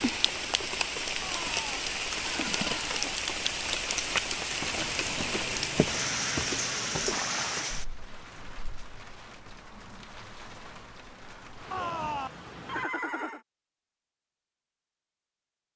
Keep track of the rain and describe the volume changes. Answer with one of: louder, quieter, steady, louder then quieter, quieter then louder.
quieter.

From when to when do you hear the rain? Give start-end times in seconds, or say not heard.
0.0-12.8.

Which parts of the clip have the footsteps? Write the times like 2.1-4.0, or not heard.
4.5-7.7.